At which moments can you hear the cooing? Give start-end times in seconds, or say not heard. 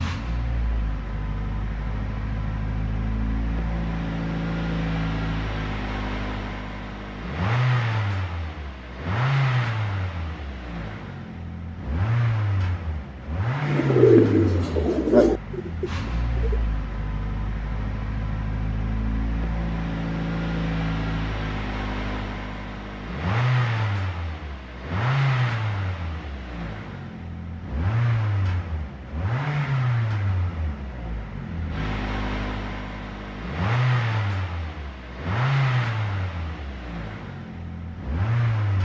13.7-16.6.